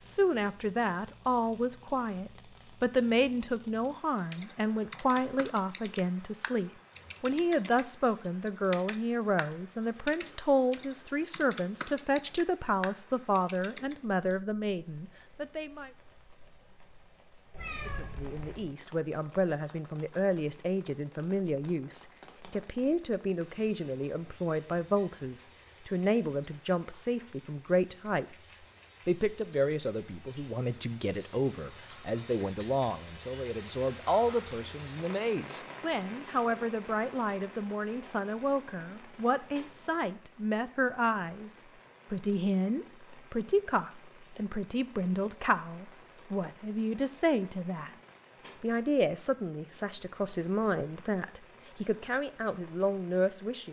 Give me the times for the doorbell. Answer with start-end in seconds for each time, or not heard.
not heard.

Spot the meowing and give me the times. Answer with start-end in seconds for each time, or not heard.
17.5-18.8.